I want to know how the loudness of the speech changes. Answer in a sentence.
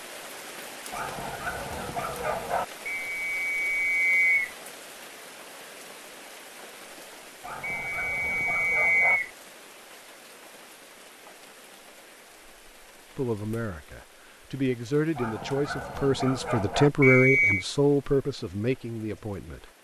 The loudness of the speech goes up, then down.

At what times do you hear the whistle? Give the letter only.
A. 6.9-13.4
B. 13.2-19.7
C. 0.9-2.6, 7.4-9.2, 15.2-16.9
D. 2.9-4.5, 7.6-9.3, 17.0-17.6
D.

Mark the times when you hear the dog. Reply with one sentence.
The dog can be heard from 0.9 to 2.6 s, from 7.4 to 9.2 s and from 15.2 to 16.9 s.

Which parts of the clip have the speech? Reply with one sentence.
The speech can be heard from 13.2 to 19.7 s.